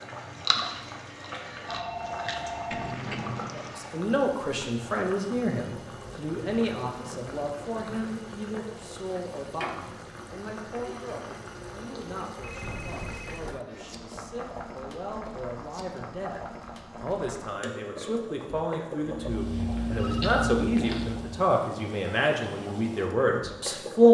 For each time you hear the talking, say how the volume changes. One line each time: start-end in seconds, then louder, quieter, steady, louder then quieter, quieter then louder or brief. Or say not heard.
3.5-24.1 quieter then louder.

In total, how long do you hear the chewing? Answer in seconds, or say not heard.
6 s.